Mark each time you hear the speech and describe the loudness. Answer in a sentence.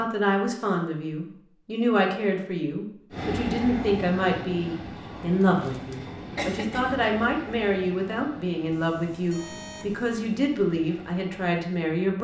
The speech can be heard from 0.0 to 12.1 s, at a steady volume.